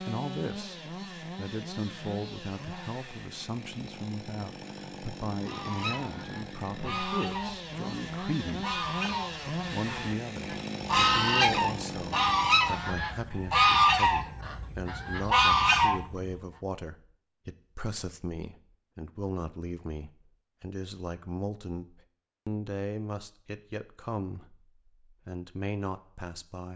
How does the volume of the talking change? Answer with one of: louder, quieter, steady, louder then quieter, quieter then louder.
steady.